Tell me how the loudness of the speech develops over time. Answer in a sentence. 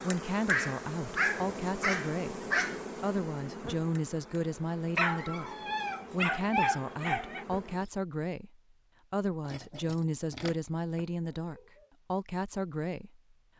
The loudness of the speech stays about the same.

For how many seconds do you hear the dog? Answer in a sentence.
You can hear the dog for 7 seconds altogether.